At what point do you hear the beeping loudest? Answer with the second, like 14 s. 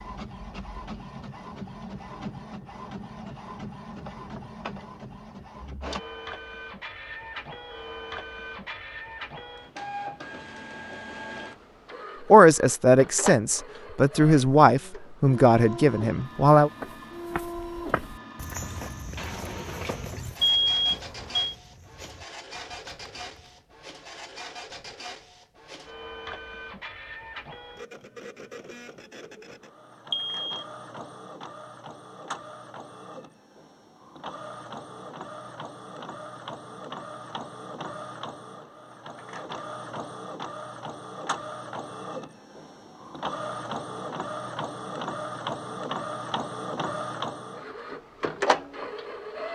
21 s.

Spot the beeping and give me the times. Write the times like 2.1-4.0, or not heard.
20.4-21.6, 30.1-30.6.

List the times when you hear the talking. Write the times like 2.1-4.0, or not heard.
12.3-16.7.